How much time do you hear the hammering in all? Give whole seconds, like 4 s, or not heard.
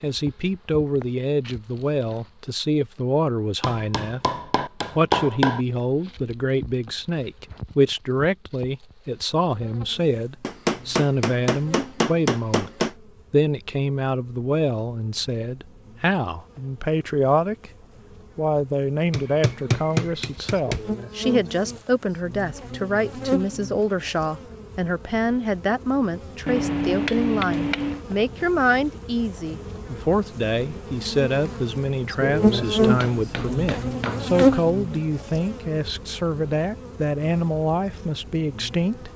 9 s.